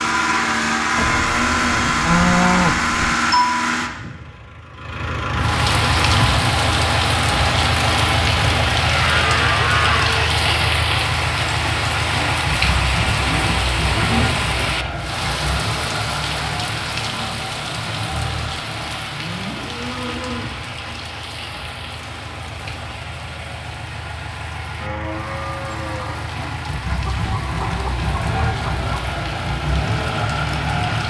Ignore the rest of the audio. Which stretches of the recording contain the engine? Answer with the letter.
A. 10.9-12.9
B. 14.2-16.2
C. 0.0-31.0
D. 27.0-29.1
C.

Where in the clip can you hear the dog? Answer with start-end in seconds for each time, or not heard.
not heard.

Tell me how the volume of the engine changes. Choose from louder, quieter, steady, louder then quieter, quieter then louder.
quieter then louder.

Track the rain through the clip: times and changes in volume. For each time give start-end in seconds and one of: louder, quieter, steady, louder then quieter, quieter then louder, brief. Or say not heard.
5.3-31.0 quieter.